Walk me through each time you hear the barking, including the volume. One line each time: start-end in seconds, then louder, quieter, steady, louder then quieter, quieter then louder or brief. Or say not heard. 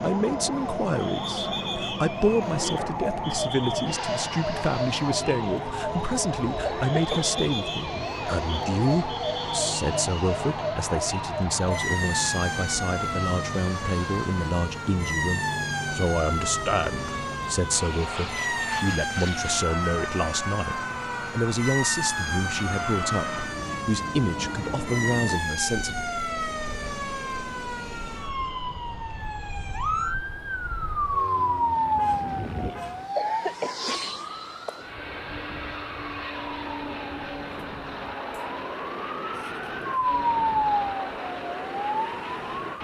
not heard.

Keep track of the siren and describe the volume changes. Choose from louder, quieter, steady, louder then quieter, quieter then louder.
steady.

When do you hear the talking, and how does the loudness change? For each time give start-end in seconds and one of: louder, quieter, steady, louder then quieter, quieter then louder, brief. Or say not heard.
0.0-26.1 steady.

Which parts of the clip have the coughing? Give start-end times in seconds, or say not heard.
6.7-7.4, 33.1-34.0.